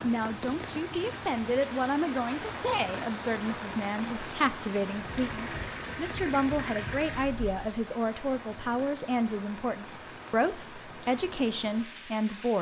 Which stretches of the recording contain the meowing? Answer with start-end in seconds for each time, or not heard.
not heard.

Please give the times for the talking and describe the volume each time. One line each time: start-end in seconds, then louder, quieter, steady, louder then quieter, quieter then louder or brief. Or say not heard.
0.0-12.5 steady.